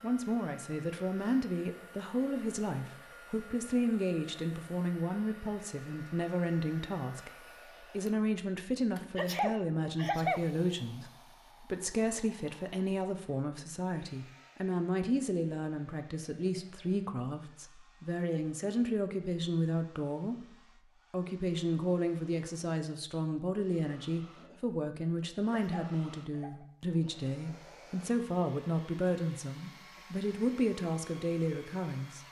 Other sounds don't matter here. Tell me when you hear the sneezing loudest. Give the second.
10 s.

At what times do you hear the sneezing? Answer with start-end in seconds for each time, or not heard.
9.2-10.4, 25.6-26.6.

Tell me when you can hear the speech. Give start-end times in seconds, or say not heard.
0.0-32.2.